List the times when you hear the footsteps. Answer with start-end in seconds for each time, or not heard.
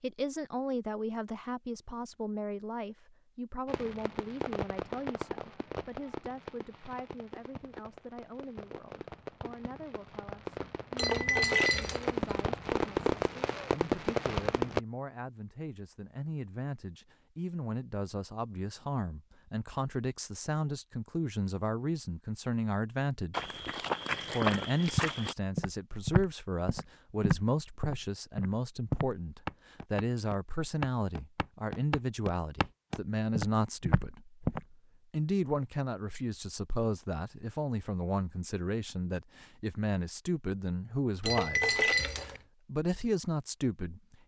23.3-34.6.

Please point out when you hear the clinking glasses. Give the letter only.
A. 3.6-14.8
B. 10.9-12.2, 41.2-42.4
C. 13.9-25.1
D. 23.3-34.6
B.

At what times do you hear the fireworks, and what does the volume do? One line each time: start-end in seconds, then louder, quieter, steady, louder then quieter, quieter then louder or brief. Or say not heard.
3.6-14.8 quieter then louder.